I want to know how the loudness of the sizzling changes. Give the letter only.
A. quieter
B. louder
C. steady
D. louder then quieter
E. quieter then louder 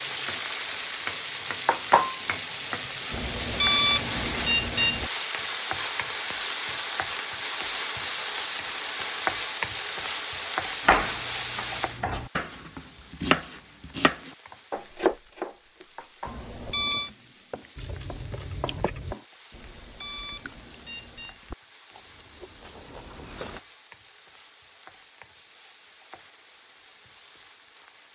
A.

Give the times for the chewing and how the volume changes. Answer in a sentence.
The chewing can be heard from 17.8 to 23.6 s, getting quieter then louder.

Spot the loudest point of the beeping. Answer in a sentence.
The volume of the beeping peaks at 4 seconds.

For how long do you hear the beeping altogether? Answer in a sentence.
You can hear the beeping for 5 seconds altogether.